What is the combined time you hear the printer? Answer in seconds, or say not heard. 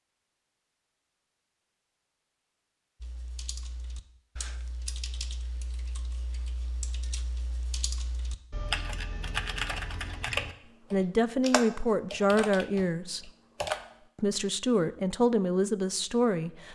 not heard.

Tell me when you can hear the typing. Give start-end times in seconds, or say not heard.
3.0-14.1.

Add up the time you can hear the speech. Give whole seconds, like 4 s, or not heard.
5 s.